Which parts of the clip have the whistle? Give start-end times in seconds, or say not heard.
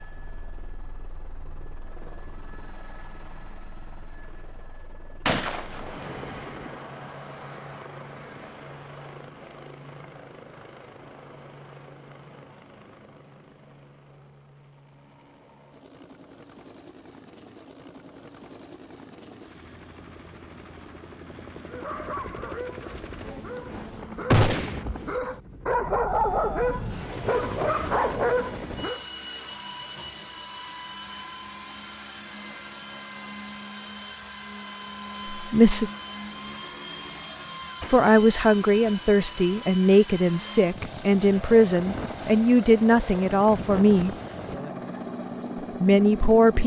not heard.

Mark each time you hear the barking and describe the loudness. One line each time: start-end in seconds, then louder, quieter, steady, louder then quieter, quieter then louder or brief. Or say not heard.
21.7-29.0 louder.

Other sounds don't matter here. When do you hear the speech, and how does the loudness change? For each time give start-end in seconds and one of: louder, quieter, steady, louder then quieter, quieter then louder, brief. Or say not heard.
35.3-35.9 brief
37.9-44.1 steady
45.8-46.6 brief.